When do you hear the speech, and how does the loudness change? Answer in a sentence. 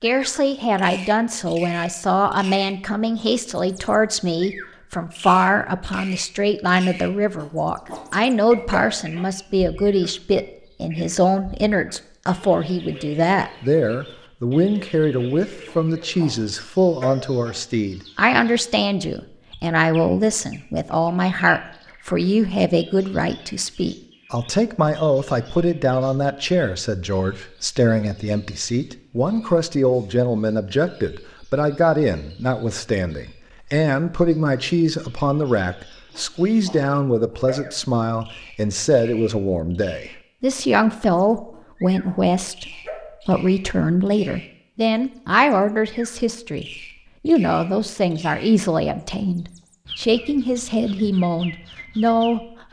You can hear the speech from 0.0 to 52.6 s, at a steady volume.